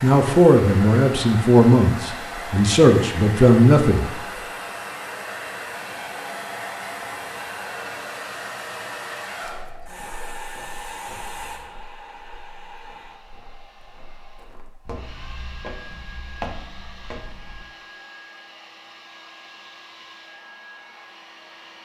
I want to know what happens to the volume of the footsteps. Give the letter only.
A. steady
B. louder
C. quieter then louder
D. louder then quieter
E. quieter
C.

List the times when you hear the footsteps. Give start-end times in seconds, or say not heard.
9.4-17.6.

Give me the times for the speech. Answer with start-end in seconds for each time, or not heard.
0.0-4.1.